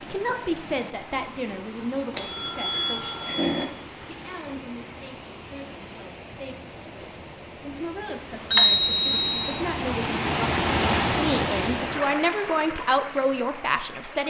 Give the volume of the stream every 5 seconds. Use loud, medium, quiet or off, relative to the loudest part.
quiet, medium, loud.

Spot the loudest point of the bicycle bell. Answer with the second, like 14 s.
9 s.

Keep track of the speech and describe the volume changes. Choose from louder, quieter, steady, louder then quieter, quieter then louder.
quieter then louder.